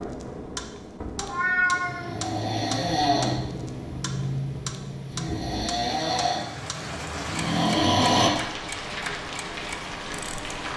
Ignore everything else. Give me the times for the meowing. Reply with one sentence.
The meowing can be heard from 1.1 to 2.2 s.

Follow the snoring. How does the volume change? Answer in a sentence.
The volume of the snoring goes down, then up.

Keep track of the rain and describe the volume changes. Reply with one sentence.
The volume of the rain goes up.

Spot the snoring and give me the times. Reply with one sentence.
The snoring can be heard from 1.9 to 8.3 s.